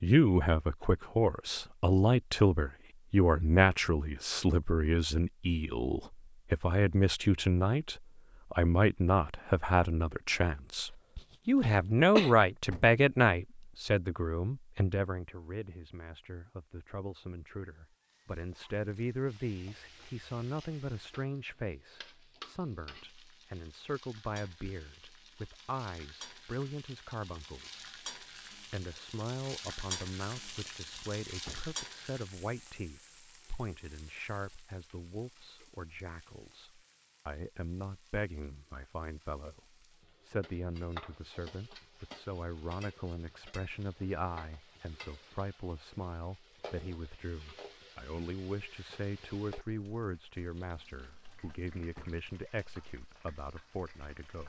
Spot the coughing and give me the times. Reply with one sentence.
The coughing can be heard from 10.7 to 12.3 s.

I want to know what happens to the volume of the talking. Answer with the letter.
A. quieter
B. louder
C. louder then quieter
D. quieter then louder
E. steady
A.